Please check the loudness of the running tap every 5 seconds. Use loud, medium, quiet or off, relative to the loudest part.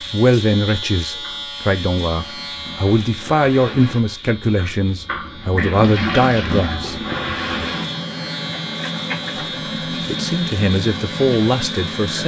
quiet, loud, loud.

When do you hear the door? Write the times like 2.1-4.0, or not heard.
not heard.